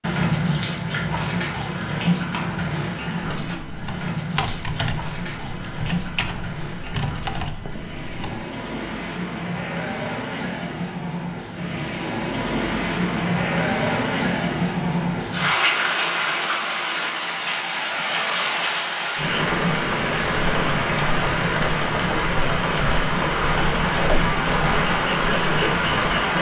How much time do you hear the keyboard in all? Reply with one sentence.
The keyboard can be heard for 5 seconds in total.